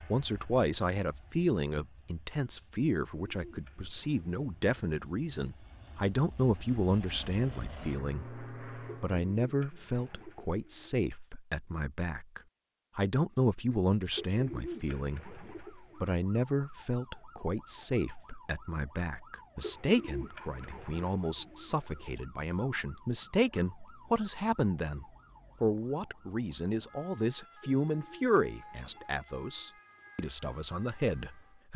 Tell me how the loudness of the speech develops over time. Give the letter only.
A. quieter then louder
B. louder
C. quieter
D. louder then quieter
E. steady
E.